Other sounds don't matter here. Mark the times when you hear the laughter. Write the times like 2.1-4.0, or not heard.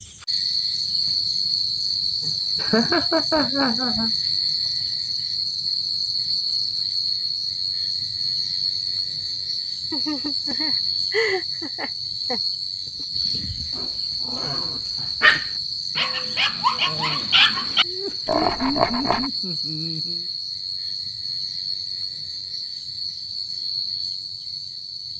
2.2-4.1, 9.9-12.4, 17.8-20.2.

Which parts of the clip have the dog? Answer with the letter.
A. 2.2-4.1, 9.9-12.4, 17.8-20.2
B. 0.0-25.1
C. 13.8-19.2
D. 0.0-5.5
C.